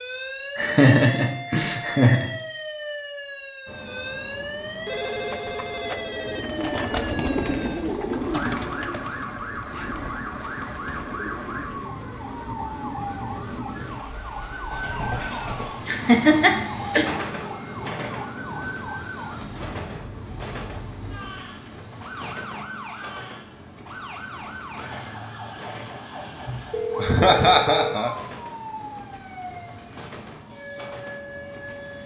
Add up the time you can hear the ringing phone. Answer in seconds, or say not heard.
5 s.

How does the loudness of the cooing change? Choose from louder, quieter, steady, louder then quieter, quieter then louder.
quieter.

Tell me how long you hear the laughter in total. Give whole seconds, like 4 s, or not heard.
5 s.